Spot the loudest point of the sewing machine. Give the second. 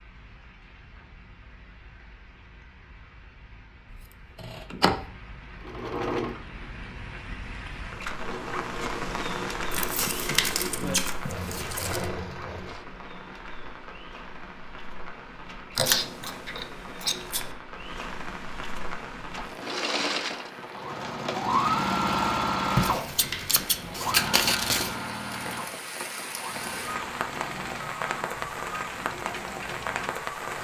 22 s.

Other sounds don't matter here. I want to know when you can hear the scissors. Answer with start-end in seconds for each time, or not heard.
4.3-5.0, 15.8-17.5, 22.8-24.9.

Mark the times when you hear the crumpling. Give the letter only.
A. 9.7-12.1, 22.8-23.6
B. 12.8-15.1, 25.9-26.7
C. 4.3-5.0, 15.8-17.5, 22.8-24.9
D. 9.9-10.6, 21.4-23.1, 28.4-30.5
A.